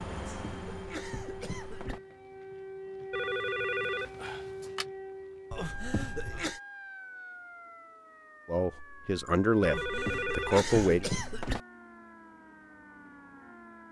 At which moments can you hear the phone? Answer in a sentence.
The phone can be heard from 3.1 to 4.8 s and from 9.6 to 11.1 s.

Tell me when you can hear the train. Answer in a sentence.
The train can be heard from 0.0 to 1.9 s.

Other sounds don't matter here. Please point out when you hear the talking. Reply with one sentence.
The talking can be heard from 8.4 to 11.1 s.